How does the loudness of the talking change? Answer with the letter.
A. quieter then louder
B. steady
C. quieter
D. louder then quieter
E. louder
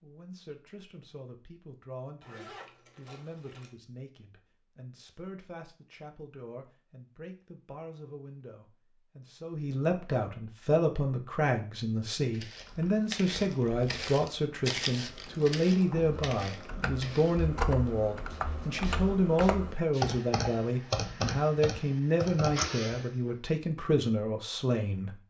E.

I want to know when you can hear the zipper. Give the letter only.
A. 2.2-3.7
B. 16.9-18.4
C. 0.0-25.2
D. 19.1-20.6
A.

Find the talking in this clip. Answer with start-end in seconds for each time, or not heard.
0.0-25.2.